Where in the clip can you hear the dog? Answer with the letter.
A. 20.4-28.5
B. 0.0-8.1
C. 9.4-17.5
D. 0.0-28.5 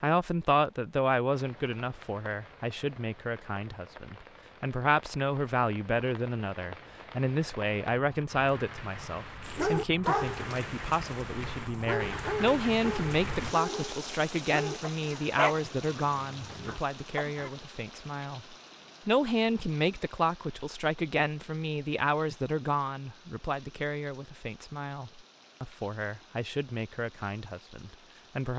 C.